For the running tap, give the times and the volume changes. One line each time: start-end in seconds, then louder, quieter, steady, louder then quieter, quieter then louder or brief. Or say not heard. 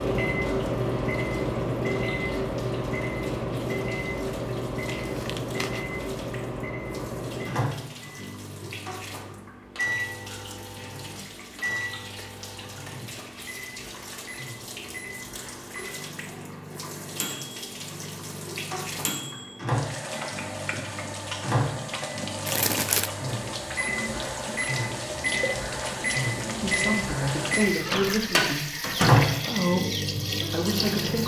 0.0-31.2 louder.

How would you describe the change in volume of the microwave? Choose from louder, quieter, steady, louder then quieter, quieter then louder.
quieter then louder.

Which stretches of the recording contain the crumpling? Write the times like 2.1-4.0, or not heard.
4.8-5.8, 22.4-23.1.